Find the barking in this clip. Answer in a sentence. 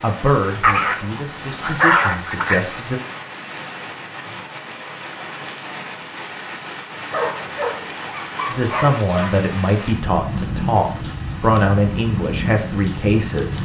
You can hear the barking from 0.6 to 2.6 s and from 7.1 to 9.3 s.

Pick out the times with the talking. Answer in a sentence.
The talking can be heard from 0.0 to 3.0 s and from 8.5 to 13.5 s.